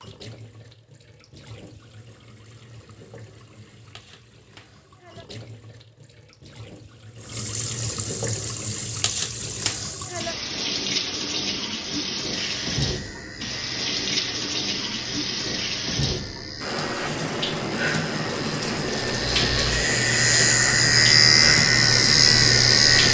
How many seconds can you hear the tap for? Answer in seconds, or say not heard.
23 s.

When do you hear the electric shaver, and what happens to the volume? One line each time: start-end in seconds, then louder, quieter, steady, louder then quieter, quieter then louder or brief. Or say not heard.
12.3-23.0 louder.